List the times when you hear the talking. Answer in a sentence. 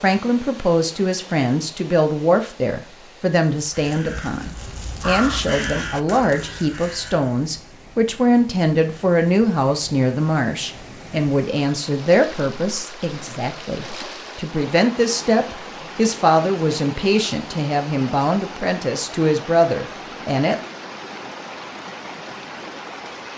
The talking can be heard from 0.0 to 20.6 s.